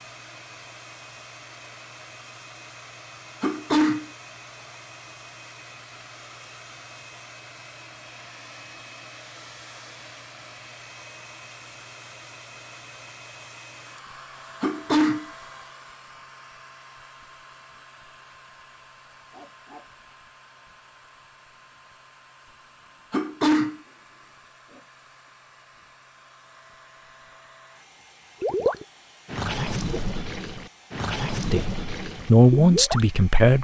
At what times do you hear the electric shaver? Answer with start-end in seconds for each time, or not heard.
not heard.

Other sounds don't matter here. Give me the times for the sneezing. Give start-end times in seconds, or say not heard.
3.4-4.0, 14.6-15.2, 23.1-23.8.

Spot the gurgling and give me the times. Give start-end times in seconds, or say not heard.
28.4-33.1.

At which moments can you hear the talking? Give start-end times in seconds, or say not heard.
31.4-33.5.